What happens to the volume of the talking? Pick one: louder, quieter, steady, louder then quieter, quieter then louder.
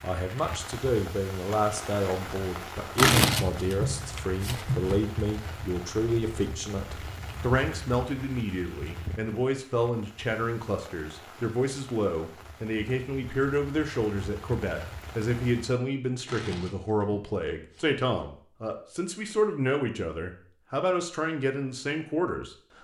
steady.